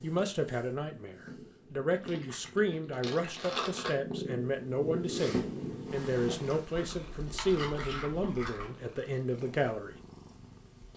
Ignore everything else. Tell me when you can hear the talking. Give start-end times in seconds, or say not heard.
0.0-9.9.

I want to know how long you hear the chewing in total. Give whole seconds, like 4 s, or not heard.
4 s.